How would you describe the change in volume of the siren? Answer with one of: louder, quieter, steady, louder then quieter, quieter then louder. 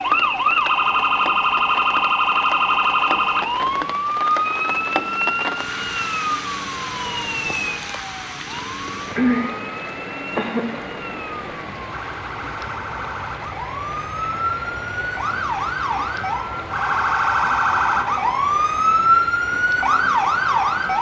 quieter then louder.